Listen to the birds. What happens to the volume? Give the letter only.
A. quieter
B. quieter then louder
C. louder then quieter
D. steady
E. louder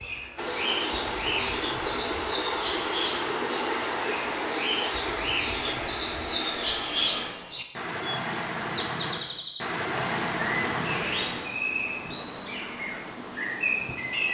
D.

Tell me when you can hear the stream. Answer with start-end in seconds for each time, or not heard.
0.0-11.6.